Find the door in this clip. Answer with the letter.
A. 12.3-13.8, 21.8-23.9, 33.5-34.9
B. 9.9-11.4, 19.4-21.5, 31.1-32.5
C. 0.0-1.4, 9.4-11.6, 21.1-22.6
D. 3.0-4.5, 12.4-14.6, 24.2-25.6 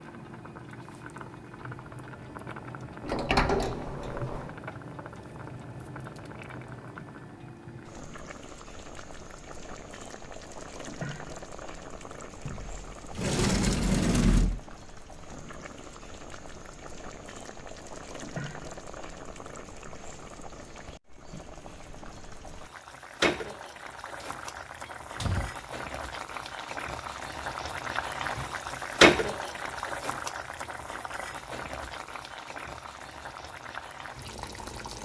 D.